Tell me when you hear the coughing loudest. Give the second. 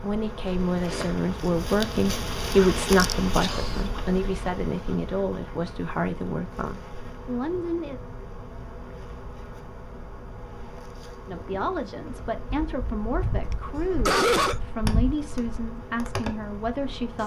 14 s.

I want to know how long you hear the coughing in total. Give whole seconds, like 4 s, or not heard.
2 s.